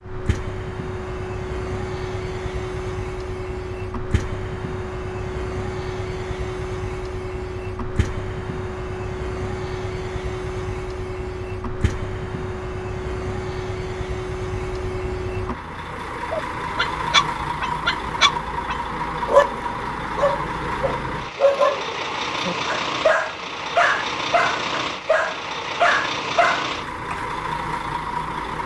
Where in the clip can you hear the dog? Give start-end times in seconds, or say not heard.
16.3-27.2.